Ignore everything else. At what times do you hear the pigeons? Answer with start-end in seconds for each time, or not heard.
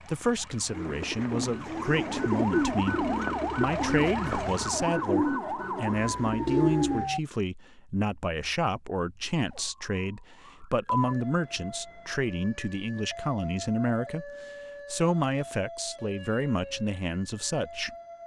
0.7-7.0.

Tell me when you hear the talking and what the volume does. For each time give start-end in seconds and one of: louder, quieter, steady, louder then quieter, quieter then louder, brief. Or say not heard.
0.1-17.9 steady.